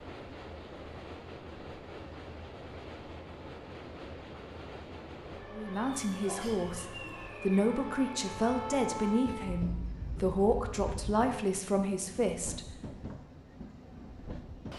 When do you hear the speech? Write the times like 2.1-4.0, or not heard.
5.5-12.6.